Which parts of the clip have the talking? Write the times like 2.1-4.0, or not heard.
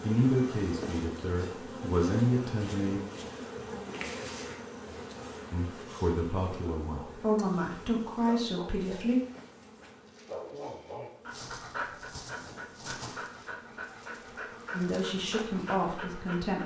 0.0-3.0, 5.5-9.2, 14.7-16.6.